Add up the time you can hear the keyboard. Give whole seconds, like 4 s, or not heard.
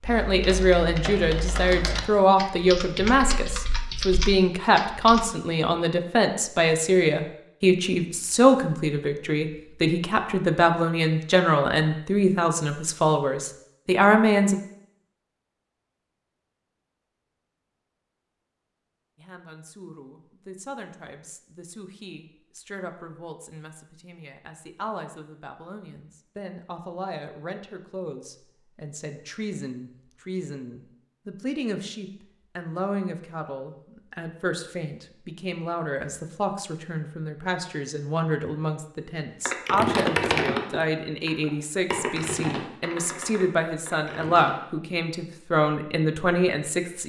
10 s.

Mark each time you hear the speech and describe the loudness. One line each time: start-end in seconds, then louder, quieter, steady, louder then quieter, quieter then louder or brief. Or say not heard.
0.0-14.6 steady
19.1-47.0 louder.